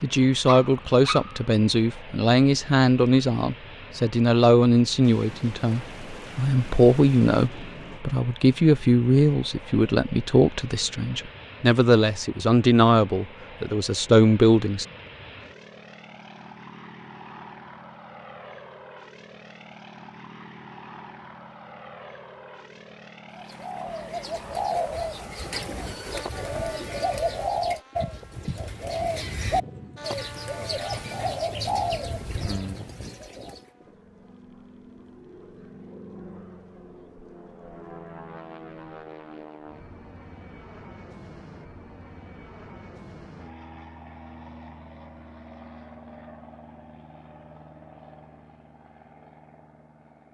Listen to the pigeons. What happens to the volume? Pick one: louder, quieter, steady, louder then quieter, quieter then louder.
steady.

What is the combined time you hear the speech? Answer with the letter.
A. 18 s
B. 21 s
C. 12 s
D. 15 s
D.